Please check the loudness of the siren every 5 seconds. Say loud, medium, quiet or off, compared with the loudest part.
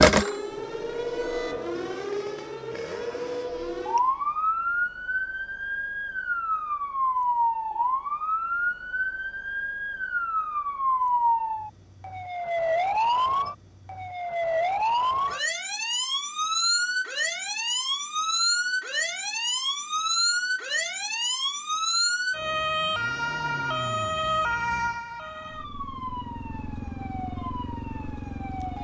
loud, loud, loud, loud, loud, quiet.